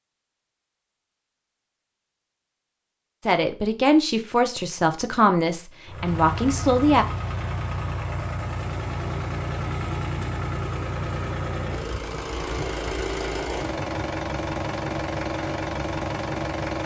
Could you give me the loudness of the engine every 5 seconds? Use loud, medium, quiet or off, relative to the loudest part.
off, loud, loud, loud.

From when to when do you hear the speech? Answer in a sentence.
You can hear the speech from 3.2 to 7.0 s.